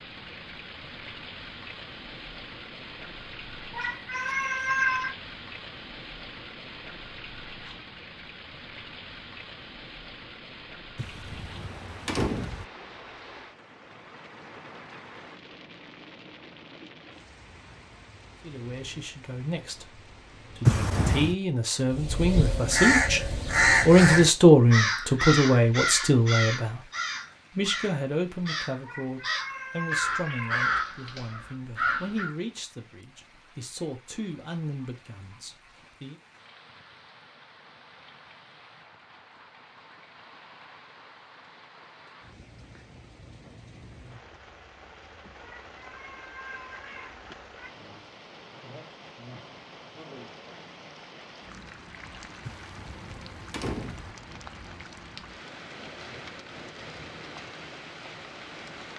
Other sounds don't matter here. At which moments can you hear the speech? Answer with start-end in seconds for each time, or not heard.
18.4-23.2, 23.9-26.9, 27.6-36.1.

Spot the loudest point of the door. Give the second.
21 s.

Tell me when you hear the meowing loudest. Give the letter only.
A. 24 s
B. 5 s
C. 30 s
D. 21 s
B.